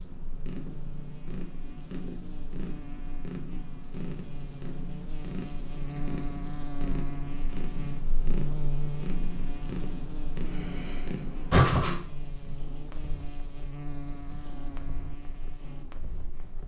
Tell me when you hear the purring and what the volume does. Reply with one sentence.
You can hear the purring from 0.0 to 16.6 s, getting quieter.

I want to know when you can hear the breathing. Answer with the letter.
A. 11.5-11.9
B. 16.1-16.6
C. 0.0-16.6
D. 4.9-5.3
A.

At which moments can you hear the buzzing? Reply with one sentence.
You can hear the buzzing from 0.0 to 16.6 s.